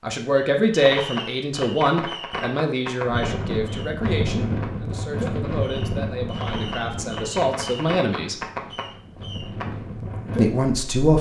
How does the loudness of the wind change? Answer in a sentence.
The loudness of the wind goes down, then up.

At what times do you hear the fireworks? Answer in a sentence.
The fireworks can be heard from 0.3 to 9.8 s.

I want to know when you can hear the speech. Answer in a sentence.
The speech can be heard from 0.0 to 8.3 s and from 10.3 to 11.1 s.